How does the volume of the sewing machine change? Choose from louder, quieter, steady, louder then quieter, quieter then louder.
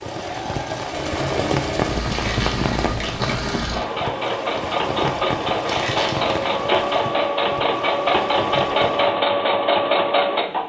louder.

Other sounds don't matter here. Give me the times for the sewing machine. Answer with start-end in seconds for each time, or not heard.
0.0-10.6.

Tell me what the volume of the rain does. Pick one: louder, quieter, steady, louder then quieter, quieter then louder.
quieter.